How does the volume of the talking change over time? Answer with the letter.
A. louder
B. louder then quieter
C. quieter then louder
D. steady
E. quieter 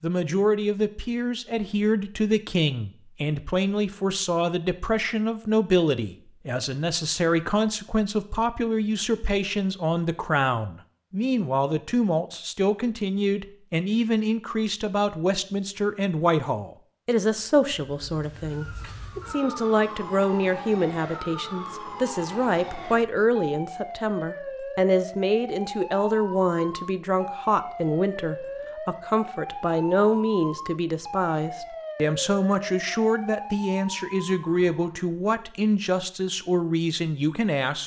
D.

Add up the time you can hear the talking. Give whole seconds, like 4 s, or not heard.
38 s.